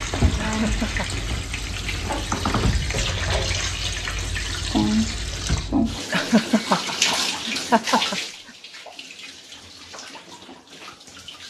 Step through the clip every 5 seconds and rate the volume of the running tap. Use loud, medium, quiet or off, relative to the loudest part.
loud, loud, quiet.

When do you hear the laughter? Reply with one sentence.
The laughter can be heard from 0.4 to 1.1 s and from 6.1 to 8.2 s.